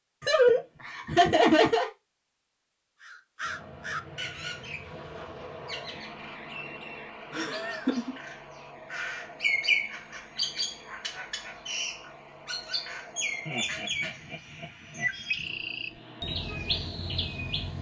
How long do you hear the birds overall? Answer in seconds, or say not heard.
15 s.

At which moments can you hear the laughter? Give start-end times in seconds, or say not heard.
0.2-1.9, 7.3-8.2, 13.4-15.1.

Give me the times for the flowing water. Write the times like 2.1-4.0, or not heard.
not heard.